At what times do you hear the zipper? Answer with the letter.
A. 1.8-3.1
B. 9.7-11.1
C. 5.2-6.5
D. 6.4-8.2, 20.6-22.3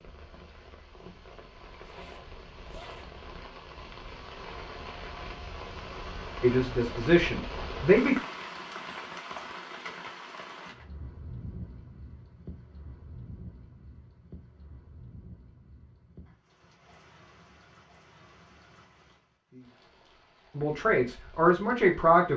A.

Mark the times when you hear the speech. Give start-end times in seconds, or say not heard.
6.4-8.2, 20.6-22.3.